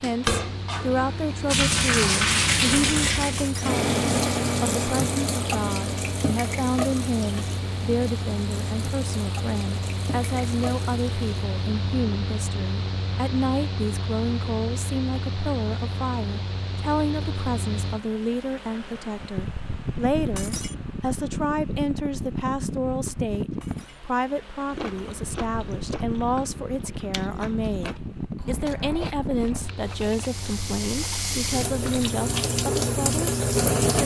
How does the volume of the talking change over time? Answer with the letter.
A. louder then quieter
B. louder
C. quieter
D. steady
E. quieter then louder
D.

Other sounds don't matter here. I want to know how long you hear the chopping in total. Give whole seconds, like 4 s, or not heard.
not heard.